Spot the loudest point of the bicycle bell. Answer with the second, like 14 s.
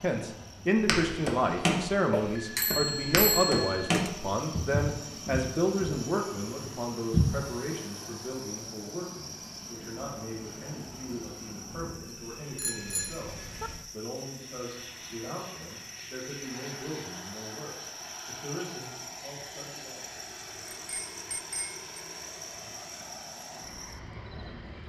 3 s.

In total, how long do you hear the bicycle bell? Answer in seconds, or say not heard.
4 s.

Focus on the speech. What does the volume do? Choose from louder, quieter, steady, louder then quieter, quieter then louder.
quieter.